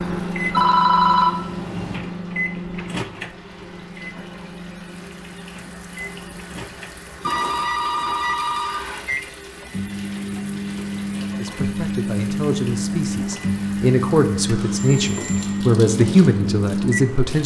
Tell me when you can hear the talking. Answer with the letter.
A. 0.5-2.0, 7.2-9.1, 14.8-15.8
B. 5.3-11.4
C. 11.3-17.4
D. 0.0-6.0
C.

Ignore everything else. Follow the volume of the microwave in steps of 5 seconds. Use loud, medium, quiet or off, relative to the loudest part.
medium, medium, loud, loud.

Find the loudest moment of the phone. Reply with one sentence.
The loudest moment of the phone is at 1 second.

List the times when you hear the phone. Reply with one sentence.
You can hear the phone from 0.5 to 2.0 s, from 7.2 to 9.1 s and from 14.8 to 15.8 s.